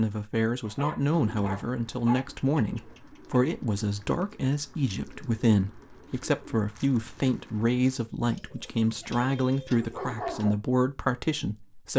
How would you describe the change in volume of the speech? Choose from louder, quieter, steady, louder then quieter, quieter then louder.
steady.